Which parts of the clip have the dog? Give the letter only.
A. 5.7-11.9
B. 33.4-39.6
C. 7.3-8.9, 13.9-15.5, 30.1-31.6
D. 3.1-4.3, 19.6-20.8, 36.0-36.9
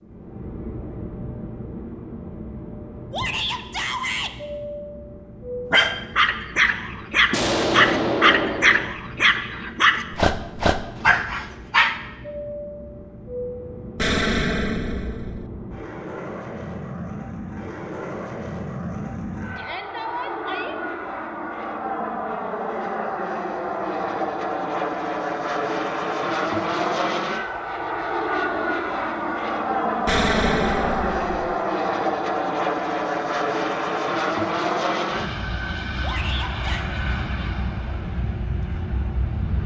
A.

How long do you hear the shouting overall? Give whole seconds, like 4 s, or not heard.
3 s.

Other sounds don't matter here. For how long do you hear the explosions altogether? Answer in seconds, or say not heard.
5 s.